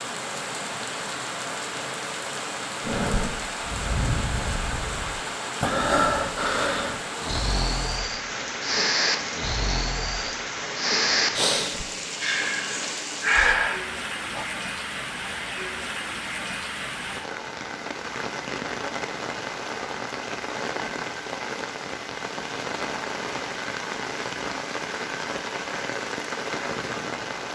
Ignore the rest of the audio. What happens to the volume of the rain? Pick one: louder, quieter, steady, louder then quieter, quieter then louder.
steady.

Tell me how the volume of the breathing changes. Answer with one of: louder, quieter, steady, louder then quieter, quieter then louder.
louder.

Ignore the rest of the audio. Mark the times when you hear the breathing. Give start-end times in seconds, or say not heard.
2.8-14.4.